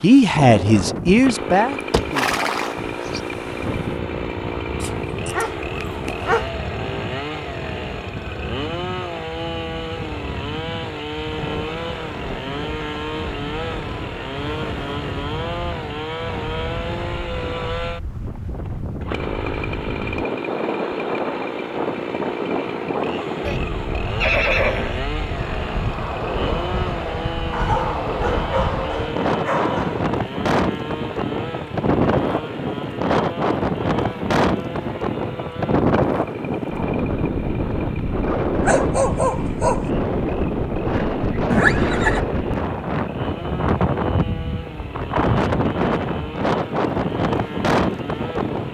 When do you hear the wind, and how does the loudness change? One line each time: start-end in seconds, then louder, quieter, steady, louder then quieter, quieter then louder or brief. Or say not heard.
0.1-48.6 louder.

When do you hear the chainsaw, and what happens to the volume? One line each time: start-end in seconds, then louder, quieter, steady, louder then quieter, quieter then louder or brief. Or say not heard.
0.0-48.6 quieter.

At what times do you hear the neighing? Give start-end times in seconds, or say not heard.
1.9-3.2, 24.2-25.1, 41.5-42.2.